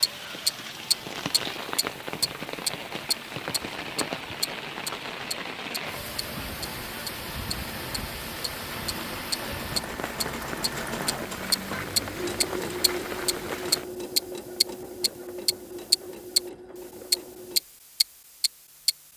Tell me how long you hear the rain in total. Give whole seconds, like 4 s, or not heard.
14 s.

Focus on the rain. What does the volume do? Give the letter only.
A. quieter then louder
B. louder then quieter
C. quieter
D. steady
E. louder
D.